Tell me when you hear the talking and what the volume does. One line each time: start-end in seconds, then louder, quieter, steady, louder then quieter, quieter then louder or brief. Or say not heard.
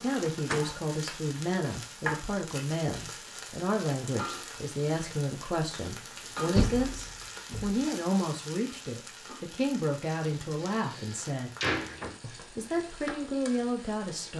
0.0-11.5 steady
12.2-14.3 brief.